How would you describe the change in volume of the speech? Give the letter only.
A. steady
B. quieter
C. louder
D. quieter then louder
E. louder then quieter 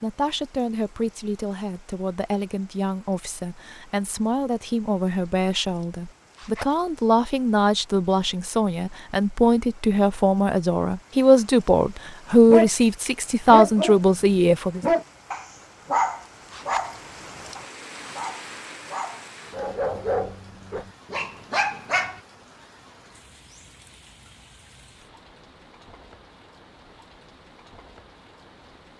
C.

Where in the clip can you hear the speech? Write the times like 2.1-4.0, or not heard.
0.0-14.8.